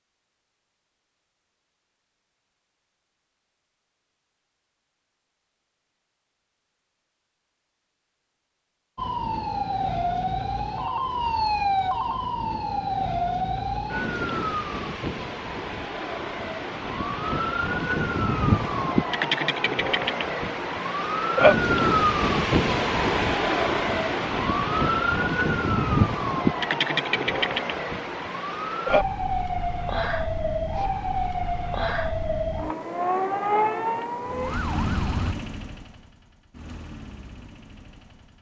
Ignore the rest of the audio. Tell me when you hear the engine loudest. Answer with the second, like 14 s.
35 s.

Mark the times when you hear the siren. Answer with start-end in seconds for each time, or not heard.
8.9-35.4.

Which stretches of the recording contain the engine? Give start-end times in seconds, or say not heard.
34.2-38.3.